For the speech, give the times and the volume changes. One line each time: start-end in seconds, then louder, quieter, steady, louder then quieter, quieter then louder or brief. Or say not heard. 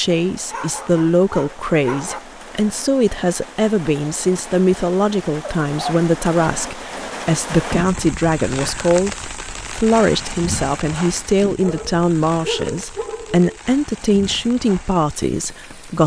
0.0-16.0 steady.